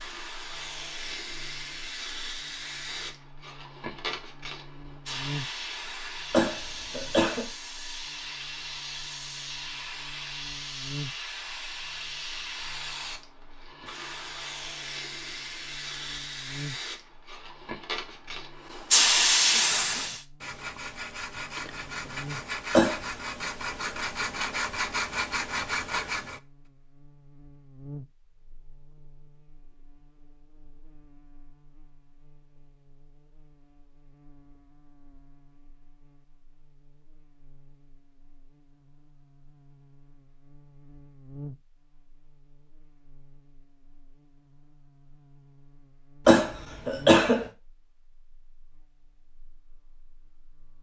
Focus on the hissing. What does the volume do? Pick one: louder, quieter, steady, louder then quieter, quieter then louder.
louder.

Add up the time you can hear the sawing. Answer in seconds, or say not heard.
7 s.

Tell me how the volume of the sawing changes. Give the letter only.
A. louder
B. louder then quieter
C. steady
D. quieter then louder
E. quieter
A.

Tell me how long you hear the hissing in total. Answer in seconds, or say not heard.
20 s.